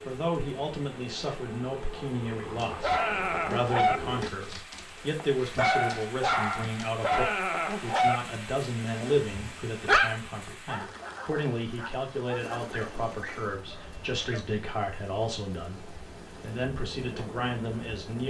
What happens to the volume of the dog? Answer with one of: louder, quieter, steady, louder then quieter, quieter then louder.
quieter.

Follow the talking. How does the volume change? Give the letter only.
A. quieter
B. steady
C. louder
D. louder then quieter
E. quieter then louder
B.